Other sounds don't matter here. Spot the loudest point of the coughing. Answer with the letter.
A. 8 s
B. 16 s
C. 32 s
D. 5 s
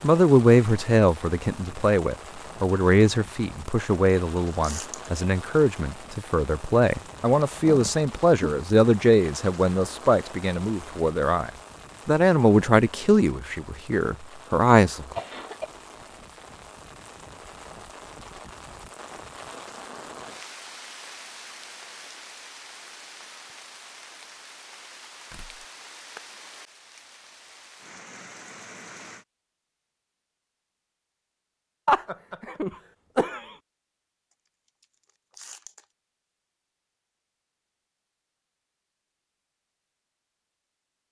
C.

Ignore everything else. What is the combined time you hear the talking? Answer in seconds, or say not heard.
15 s.